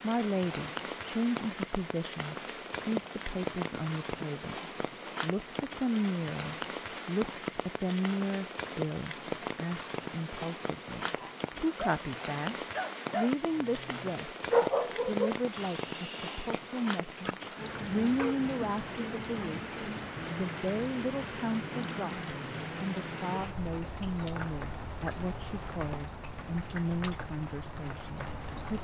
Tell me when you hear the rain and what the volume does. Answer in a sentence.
You can hear the rain from 0.0 to 28.7 s, at a steady volume.